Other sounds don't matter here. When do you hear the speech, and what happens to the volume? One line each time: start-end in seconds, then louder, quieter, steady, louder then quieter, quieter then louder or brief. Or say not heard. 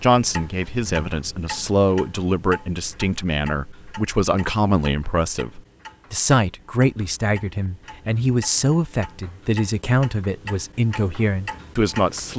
0.0-12.3 steady.